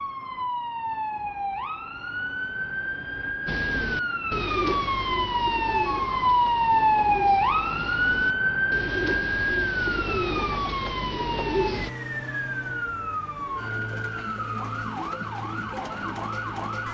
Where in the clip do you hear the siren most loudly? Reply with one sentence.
The volume of the siren peaks at 7 seconds.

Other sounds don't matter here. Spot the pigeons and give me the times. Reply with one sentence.
You can hear the pigeons from 3.5 to 11.9 s.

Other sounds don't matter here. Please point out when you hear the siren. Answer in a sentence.
You can hear the siren from 0.0 to 16.8 s.